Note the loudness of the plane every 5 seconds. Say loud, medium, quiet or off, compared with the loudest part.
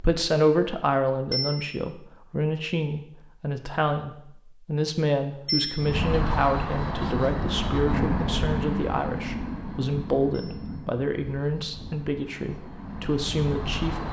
off, loud, medium.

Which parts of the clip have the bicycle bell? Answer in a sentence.
The bicycle bell can be heard from 1.3 to 1.8 s, from 5.5 to 6.0 s and from 10.3 to 10.8 s.